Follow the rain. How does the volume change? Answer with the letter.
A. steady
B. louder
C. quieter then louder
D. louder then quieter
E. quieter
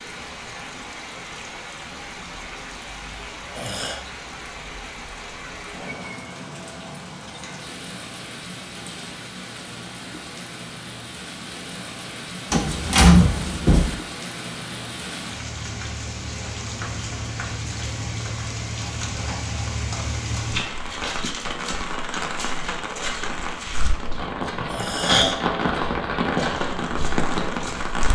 B.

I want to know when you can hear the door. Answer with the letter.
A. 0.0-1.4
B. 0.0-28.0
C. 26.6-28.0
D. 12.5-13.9
D.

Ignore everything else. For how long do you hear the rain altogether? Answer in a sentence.
The rain can be heard for 28 seconds in total.